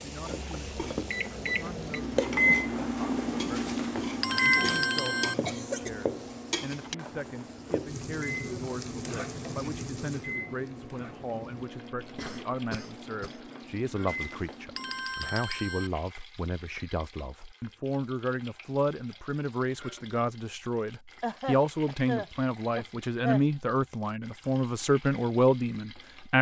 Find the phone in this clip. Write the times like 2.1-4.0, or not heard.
3.5-5.3, 14.1-15.9.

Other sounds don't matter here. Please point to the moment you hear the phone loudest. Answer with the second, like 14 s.
5 s.